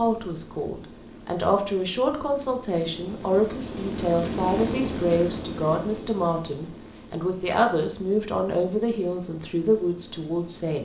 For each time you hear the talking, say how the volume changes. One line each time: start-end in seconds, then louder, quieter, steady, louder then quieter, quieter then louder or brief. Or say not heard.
0.0-10.7 steady.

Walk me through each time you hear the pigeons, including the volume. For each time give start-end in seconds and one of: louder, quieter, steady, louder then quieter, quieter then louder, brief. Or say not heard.
not heard.